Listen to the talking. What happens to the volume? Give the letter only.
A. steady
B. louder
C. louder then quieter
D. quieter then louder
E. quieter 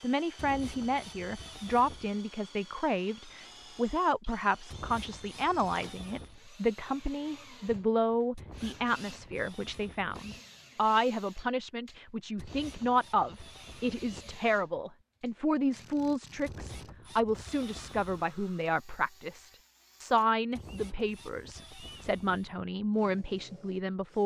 A.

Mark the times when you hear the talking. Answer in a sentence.
You can hear the talking from 0.0 to 24.2 s.